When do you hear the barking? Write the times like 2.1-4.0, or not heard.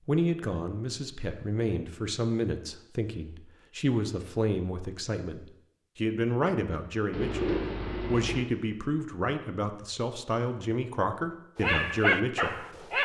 11.6-13.0.